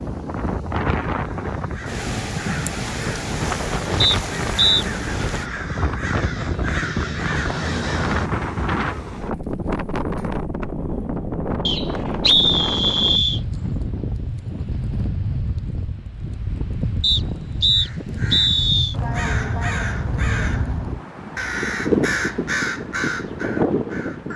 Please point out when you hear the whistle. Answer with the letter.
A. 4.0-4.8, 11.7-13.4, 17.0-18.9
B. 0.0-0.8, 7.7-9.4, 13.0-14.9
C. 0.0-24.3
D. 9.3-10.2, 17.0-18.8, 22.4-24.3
A.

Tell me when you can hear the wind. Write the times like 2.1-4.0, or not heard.
0.0-24.3.